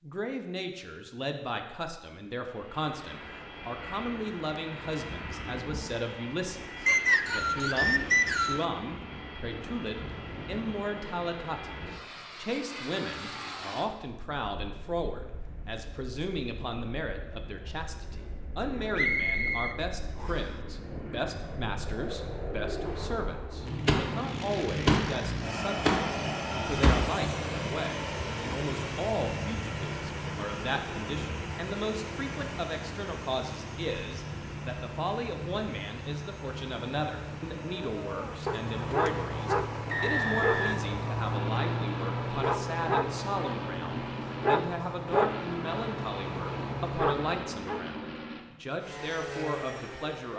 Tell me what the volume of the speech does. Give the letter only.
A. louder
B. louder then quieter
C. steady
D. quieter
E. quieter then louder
C.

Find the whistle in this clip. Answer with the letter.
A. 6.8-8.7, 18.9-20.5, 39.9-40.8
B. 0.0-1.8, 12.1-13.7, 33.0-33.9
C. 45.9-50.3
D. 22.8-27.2
A.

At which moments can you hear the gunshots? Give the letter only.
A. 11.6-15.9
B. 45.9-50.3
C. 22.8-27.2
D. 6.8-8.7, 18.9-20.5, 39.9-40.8
C.